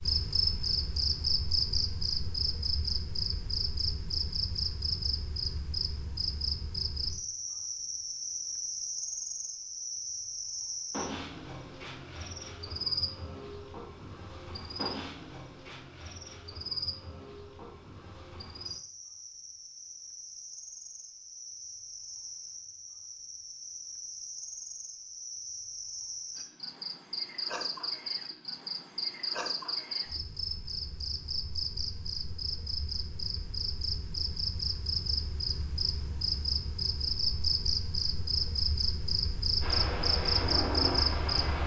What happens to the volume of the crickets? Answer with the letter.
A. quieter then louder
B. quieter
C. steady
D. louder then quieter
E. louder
A.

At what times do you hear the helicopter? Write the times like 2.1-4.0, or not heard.
39.6-41.6.